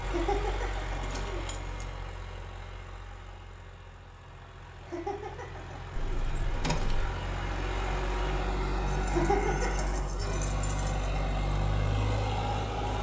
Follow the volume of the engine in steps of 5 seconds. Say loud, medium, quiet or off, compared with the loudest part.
medium, loud, loud.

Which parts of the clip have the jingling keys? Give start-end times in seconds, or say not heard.
1.0-1.9, 6.0-7.2, 8.8-11.2.